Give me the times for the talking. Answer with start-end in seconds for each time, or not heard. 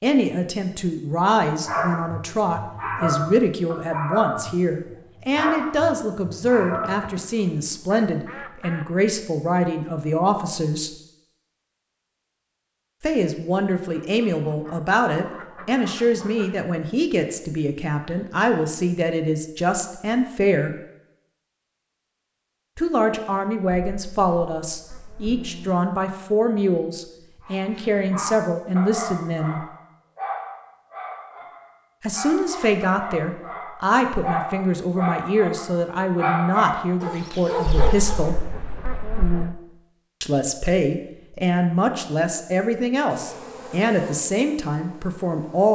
0.0-10.9, 13.0-20.7, 22.8-29.6, 32.0-38.4, 40.2-45.7.